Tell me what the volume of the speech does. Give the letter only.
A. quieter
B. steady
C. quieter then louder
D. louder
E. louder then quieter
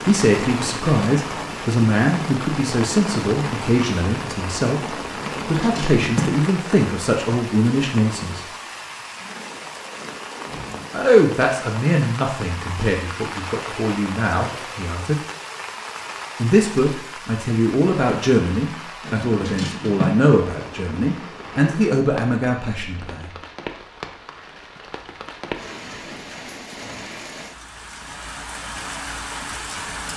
B.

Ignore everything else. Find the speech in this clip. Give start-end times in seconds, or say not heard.
0.1-8.4, 10.9-15.2, 16.4-23.3.